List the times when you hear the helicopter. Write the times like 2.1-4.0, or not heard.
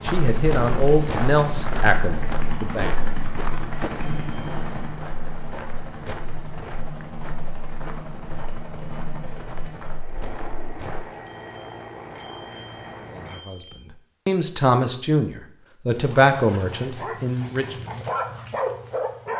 0.0-13.4.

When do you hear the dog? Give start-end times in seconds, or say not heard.
15.9-19.3.